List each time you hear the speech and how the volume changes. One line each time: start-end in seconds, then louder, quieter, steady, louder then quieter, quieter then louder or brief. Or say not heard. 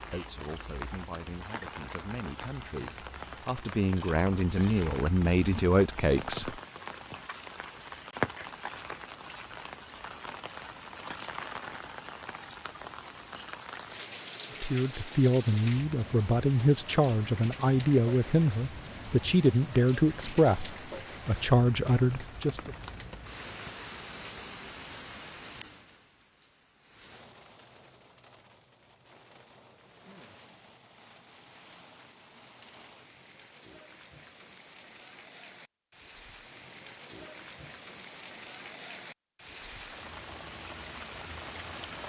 0.1-6.6 louder
14.6-22.8 steady.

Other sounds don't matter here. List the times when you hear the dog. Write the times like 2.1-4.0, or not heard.
not heard.